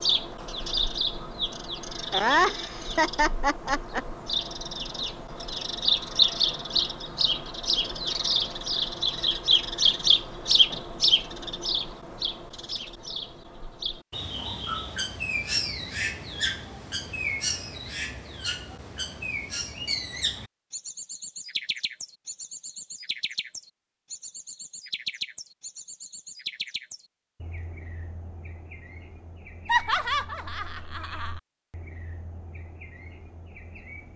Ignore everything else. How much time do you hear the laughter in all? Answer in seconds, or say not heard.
4 s.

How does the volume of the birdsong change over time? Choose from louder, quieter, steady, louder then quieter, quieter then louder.
quieter.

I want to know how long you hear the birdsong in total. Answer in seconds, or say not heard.
34 s.